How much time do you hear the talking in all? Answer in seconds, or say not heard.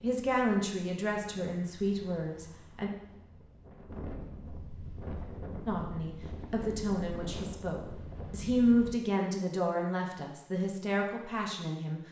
9 s.